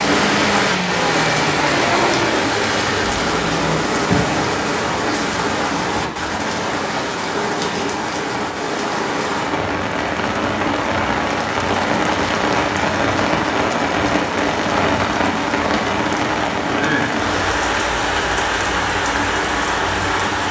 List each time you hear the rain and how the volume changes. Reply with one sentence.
You can hear the rain from 0.0 to 20.4 s, at a steady volume.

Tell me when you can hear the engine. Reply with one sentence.
The engine can be heard from 0.0 to 3.8 s.